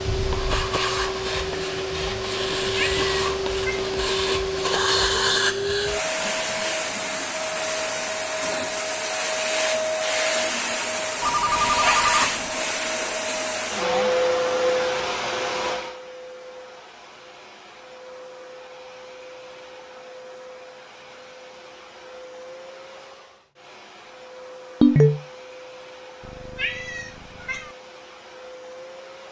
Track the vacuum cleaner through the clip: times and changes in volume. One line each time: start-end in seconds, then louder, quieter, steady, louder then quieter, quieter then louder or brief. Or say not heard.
0.0-29.2 quieter.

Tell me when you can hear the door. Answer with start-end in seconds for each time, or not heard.
not heard.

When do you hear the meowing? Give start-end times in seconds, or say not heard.
2.4-3.9, 11.4-12.3, 26.2-27.8.